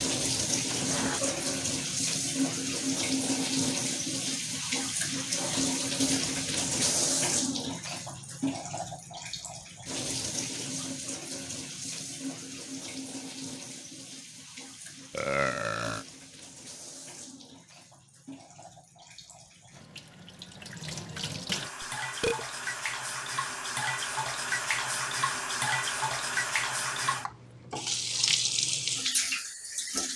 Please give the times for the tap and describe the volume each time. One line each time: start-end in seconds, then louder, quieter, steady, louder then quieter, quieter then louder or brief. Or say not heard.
0.0-30.1 quieter then louder.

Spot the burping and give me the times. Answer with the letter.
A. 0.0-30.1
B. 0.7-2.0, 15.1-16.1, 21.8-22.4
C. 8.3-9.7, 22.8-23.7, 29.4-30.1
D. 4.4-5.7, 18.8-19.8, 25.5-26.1
B.